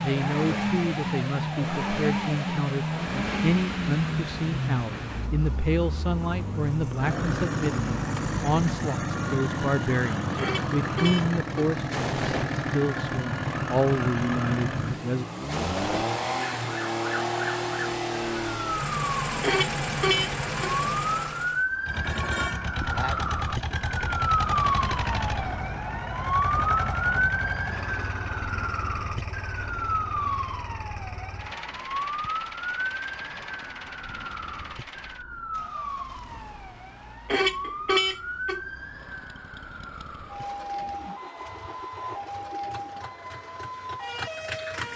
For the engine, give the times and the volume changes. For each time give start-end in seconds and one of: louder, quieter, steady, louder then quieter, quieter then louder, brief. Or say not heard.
0.0-44.9 quieter.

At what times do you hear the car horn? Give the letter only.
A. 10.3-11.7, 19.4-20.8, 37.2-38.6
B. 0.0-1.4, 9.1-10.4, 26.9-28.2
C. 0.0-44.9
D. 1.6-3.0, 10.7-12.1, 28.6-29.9
A.